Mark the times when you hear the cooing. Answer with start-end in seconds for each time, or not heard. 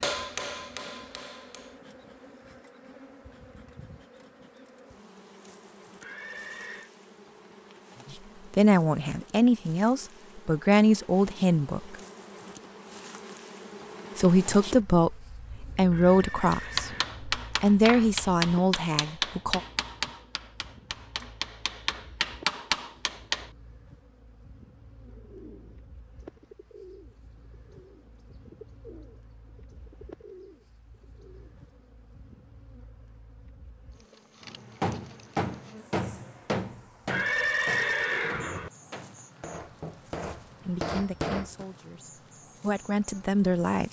24.9-31.6.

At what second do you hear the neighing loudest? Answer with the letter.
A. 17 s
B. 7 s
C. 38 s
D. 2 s
C.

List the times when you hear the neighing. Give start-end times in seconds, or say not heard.
6.0-6.9, 15.9-17.1, 37.0-38.7.